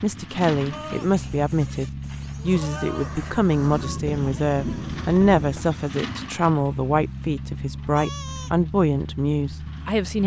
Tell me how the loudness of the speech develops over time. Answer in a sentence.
The loudness of the speech stays about the same.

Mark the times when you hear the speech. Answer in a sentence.
The speech can be heard from 0.0 to 10.2 s.